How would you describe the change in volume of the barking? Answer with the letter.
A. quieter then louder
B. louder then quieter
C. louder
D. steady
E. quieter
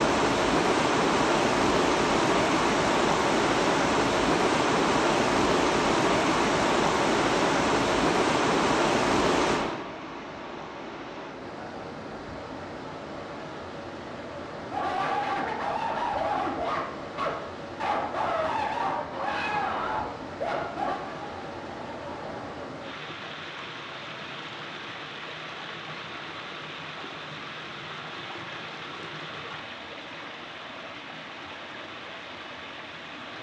E.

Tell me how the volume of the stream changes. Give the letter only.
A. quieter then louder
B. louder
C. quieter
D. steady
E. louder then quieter
C.